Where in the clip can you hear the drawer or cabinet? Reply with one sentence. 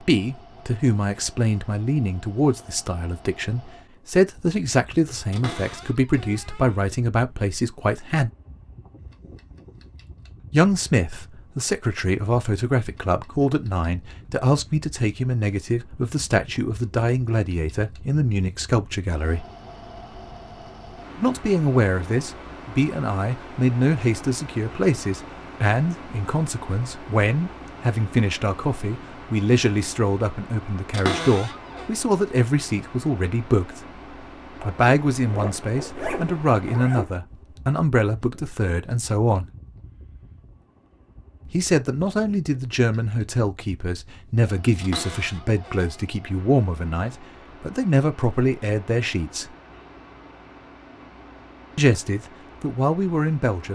You can hear the drawer or cabinet from 5.3 to 6.8 s, from 30.9 to 31.9 s and from 44.8 to 46.0 s.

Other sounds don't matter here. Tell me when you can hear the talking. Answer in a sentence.
You can hear the talking from 0.0 to 8.3 s, from 10.5 to 19.4 s, from 21.2 to 33.9 s, from 34.6 to 39.5 s, from 41.5 to 49.5 s and from 51.8 to 53.6 s.